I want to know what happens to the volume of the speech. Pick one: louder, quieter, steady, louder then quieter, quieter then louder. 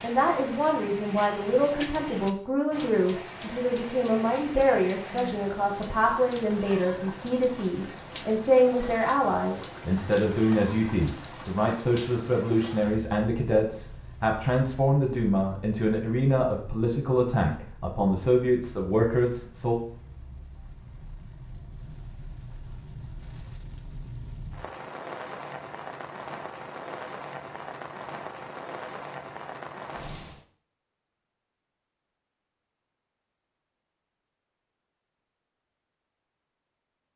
steady.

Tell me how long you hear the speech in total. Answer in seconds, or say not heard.
20 s.